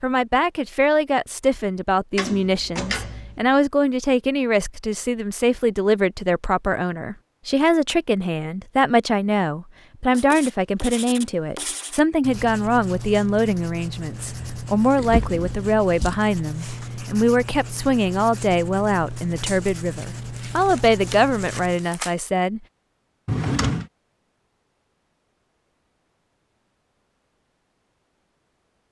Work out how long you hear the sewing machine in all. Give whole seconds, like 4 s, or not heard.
not heard.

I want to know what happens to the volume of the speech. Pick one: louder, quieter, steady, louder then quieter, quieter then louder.
steady.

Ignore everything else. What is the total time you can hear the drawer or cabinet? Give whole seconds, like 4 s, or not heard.
3 s.